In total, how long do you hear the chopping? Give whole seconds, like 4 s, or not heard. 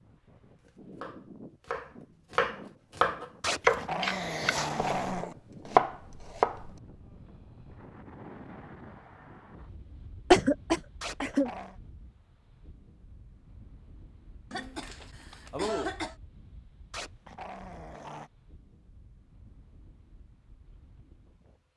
6 s.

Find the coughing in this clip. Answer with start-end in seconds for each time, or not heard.
3.6-5.0, 10.3-11.5, 14.5-16.1.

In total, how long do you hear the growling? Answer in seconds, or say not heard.
4 s.